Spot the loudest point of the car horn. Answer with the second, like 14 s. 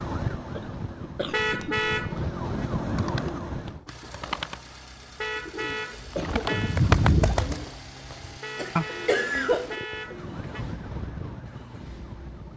2 s.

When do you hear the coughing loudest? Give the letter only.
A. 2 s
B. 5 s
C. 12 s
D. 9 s
D.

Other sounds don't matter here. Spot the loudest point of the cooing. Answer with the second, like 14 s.
7 s.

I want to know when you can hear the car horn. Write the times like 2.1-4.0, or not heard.
1.3-2.6, 5.2-6.8, 8.4-10.7.